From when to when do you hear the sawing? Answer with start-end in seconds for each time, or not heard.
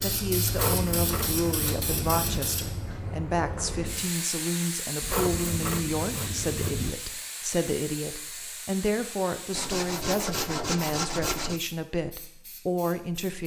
0.5-2.4, 5.0-6.9, 9.6-11.6.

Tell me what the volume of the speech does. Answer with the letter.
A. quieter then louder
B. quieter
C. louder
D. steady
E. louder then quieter
D.